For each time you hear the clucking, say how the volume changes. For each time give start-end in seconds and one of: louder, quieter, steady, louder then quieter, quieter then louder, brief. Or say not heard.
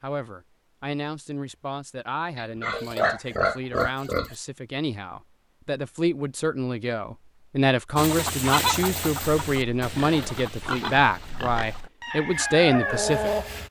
8.0-13.6 quieter then louder.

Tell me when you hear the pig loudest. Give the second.
3 s.